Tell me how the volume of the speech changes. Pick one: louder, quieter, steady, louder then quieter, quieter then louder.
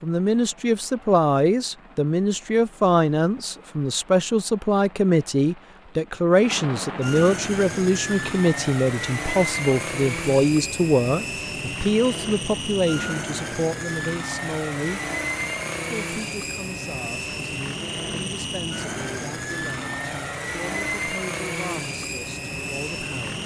quieter.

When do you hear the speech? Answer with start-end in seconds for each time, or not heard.
0.0-15.0, 15.9-23.4.